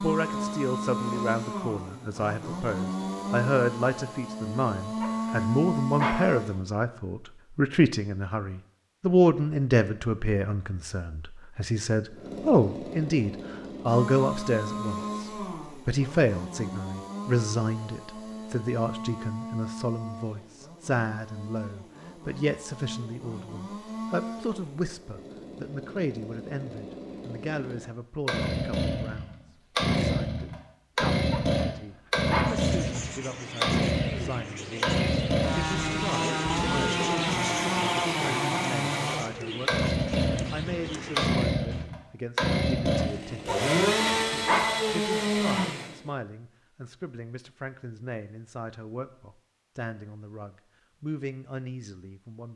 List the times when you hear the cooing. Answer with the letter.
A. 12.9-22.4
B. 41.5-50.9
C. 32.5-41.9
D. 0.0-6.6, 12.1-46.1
C.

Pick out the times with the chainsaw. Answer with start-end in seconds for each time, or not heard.
0.0-6.6, 12.1-46.1.